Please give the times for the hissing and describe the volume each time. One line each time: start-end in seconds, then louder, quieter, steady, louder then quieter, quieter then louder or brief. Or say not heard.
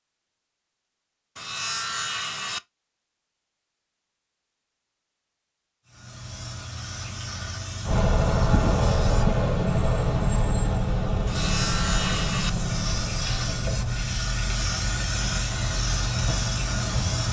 5.8-17.2 louder.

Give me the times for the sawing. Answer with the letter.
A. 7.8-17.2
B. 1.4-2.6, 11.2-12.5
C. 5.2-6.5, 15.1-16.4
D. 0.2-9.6
B.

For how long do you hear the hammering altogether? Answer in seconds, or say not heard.
not heard.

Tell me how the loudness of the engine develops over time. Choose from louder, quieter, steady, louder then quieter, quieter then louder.
quieter.